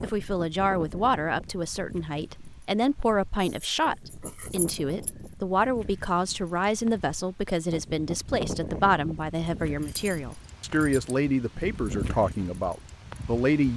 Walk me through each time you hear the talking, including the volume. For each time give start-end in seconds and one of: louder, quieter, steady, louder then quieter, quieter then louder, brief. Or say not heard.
0.0-13.7 steady.